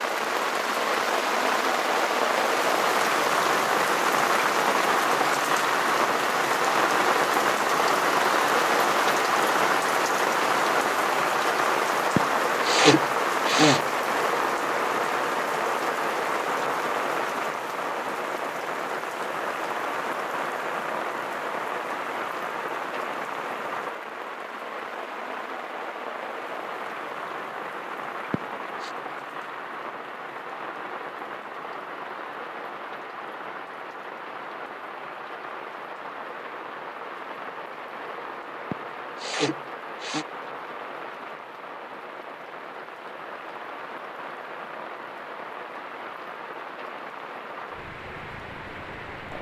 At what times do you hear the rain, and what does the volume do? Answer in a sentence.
The rain can be heard from 0.0 to 49.3 s, getting quieter.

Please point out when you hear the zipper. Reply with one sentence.
You can't hear the zipper here.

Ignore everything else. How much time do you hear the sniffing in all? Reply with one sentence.
You can hear the sniffing for 4 seconds altogether.